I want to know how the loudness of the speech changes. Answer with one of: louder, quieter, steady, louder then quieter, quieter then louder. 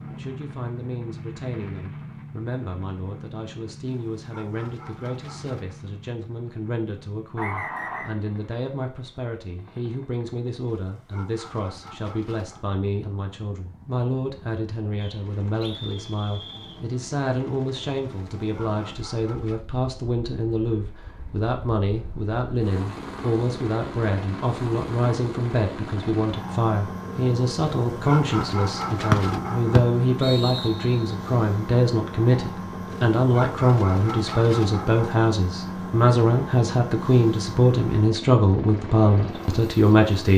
louder.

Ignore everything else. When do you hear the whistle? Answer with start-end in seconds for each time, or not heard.
7.3-8.2, 15.0-16.8, 29.8-30.9.